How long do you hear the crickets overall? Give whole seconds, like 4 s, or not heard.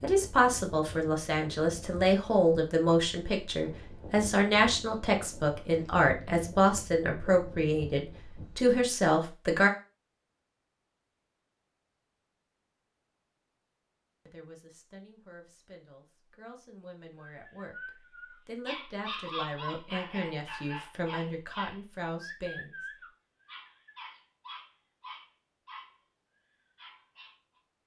not heard.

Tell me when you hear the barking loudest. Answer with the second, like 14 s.
19 s.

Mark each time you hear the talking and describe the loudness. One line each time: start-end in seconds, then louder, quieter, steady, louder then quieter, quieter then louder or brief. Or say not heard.
0.0-9.7 steady
14.2-22.9 louder.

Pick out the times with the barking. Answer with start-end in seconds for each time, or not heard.
17.2-25.9, 26.8-27.6.